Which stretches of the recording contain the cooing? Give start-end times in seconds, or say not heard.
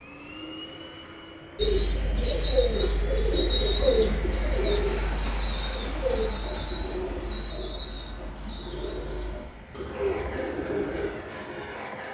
1.6-11.1.